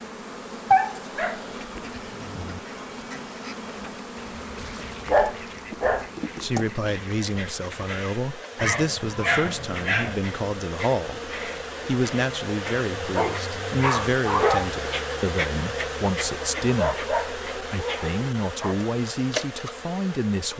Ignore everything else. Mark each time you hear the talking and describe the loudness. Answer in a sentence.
The talking can be heard from 6.4 to 20.5 s, at a steady volume.